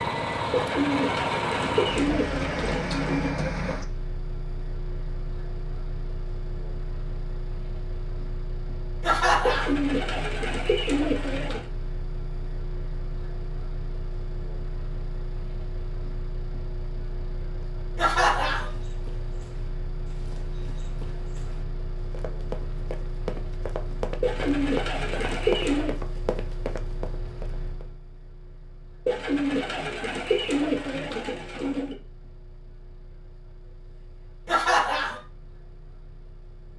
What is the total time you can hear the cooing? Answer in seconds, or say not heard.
10 s.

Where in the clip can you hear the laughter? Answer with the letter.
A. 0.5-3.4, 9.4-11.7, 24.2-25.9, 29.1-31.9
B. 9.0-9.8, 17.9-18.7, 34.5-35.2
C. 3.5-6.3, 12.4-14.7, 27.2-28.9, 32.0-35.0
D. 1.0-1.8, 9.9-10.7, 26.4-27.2
B.